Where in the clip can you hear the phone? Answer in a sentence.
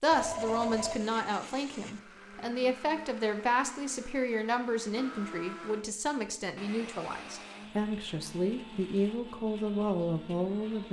The phone can be heard from 0.1 to 0.9 s.